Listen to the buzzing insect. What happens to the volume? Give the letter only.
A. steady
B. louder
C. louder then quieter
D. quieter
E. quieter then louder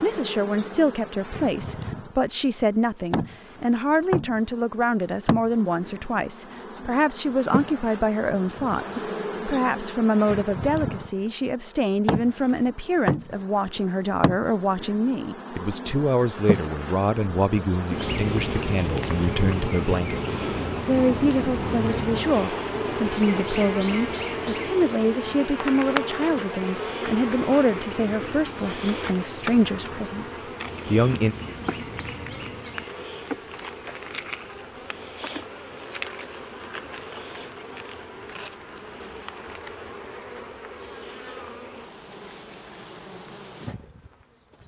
C.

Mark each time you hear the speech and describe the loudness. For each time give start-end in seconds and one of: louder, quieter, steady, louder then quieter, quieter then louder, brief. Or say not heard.
0.0-31.4 steady.